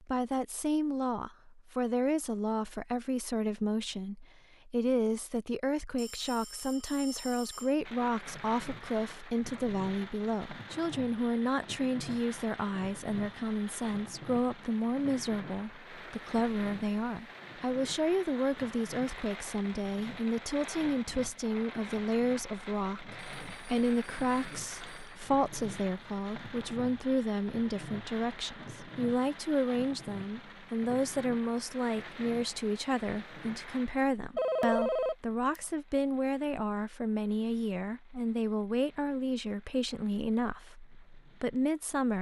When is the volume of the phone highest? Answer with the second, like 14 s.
35 s.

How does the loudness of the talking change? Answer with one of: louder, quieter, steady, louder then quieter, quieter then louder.
steady.